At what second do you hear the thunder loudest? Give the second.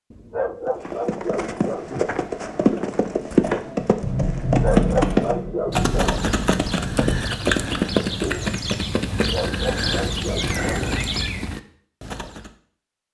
5 s.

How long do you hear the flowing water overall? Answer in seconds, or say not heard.
not heard.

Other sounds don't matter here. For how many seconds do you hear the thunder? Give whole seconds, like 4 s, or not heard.
3 s.